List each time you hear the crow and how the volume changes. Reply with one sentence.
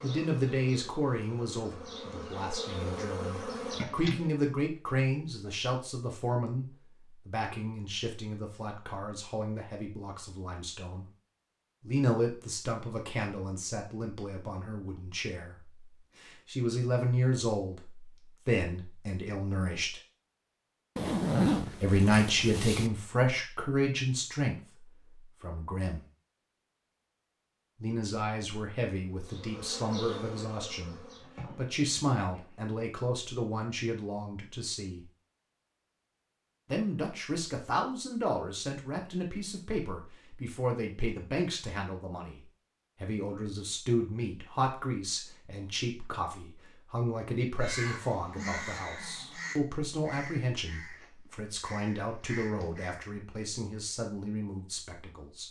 You can hear the crow from 47.5 to 53.0 s, getting quieter then louder.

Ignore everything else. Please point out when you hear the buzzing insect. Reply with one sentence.
The buzzing insect can be heard from 0.0 to 4.3 s and from 29.1 to 32.7 s.